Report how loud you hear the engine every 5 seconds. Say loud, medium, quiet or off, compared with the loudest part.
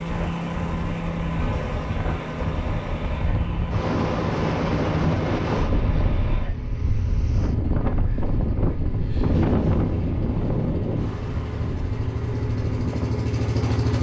loud, medium, loud.